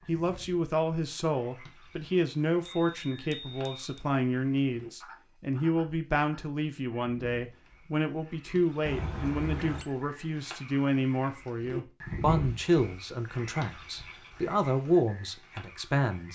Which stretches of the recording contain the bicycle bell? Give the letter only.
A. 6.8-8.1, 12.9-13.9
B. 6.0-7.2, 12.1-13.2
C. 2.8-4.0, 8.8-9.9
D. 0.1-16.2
C.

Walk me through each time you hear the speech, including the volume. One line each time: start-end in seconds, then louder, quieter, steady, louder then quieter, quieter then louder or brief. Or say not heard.
0.1-16.2 steady.